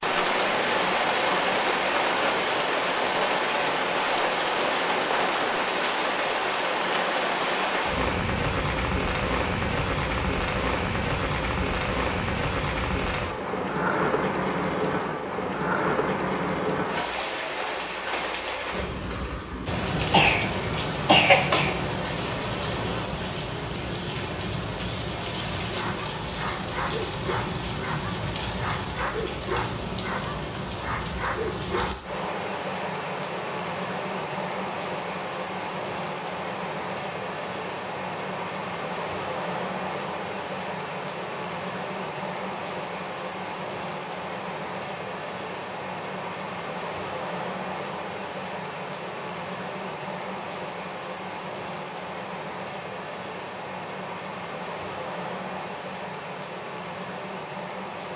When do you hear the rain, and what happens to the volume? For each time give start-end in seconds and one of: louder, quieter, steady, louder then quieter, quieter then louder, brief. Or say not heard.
0.0-58.1 quieter.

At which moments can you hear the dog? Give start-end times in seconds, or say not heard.
25.6-32.2.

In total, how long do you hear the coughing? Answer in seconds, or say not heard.
2 s.